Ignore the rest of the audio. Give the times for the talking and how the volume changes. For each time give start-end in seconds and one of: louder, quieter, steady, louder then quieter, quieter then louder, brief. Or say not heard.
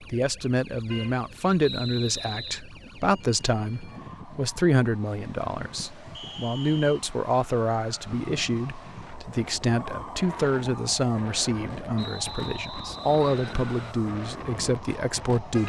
0.0-15.6 steady.